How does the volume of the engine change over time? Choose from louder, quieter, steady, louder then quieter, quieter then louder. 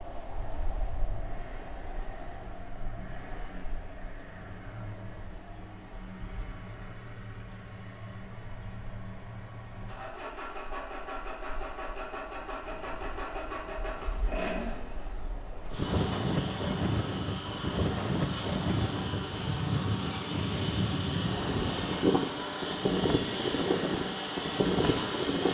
louder.